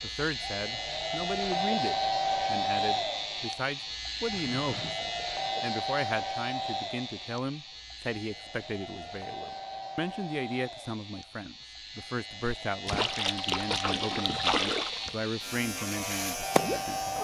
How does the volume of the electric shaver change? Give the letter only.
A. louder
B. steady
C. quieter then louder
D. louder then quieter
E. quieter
C.